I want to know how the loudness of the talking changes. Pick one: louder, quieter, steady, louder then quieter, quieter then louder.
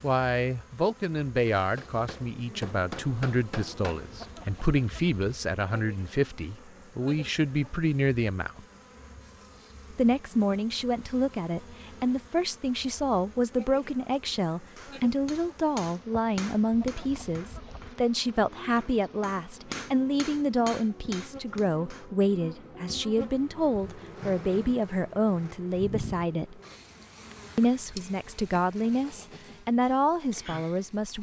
steady.